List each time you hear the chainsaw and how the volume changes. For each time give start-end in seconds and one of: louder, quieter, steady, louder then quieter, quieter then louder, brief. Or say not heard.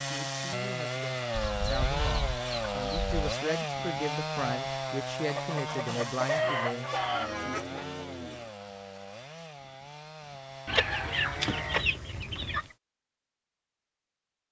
0.0-12.8 quieter.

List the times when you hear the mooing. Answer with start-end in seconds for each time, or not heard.
6.9-8.5.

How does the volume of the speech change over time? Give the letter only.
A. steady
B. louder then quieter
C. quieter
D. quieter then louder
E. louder
E.